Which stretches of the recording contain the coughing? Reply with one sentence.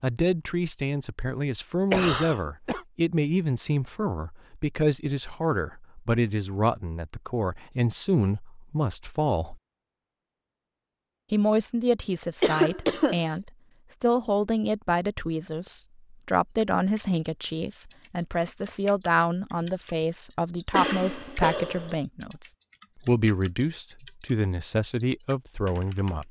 You can hear the coughing from 1.9 to 2.8 s, from 12.4 to 13.2 s and from 20.7 to 21.9 s.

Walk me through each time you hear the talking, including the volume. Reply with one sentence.
You can hear the talking from 0.0 to 9.6 s, at a steady volume; and from 11.3 to 26.2 s, at a steady volume.